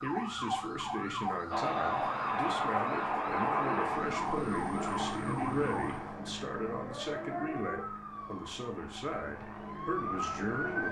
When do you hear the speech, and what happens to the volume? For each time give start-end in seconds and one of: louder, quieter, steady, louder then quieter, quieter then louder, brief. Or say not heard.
0.0-10.8 steady.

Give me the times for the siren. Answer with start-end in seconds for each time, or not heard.
0.0-10.8.